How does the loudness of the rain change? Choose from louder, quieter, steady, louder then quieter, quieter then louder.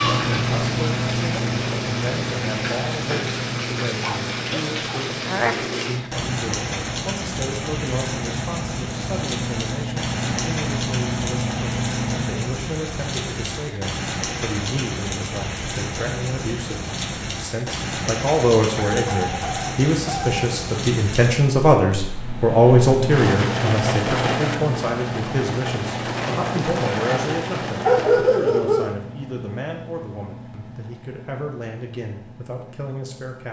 steady.